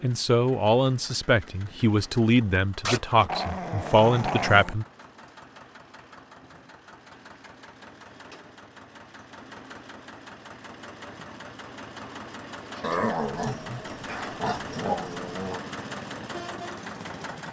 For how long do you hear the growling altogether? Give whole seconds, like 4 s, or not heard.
5 s.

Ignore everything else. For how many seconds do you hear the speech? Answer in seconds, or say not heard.
5 s.